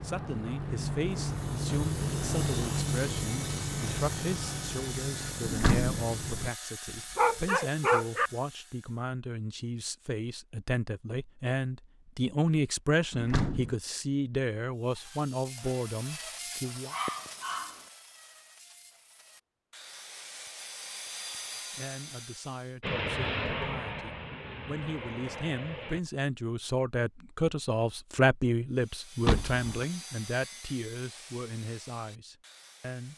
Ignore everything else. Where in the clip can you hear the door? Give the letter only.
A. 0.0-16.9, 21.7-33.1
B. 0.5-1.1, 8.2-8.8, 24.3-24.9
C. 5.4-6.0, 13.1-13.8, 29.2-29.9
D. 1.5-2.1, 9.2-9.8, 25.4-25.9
C.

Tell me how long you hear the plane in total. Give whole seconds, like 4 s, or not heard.
10 s.